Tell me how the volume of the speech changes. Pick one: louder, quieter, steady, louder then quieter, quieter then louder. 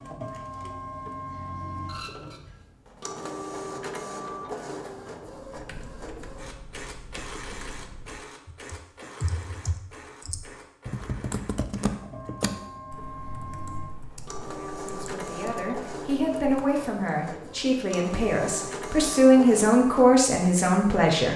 louder.